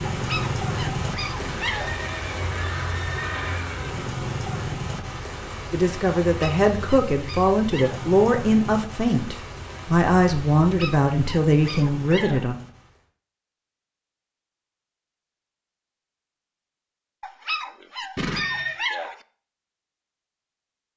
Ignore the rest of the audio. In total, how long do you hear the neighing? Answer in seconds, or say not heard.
3 s.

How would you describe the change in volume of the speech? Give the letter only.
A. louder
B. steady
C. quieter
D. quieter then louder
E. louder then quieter
B.